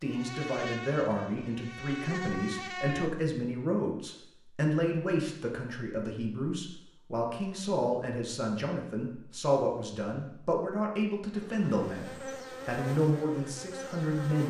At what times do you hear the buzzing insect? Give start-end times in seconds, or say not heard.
0.1-3.1, 11.3-14.4.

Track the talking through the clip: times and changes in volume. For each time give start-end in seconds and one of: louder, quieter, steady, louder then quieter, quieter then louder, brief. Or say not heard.
0.0-14.4 steady.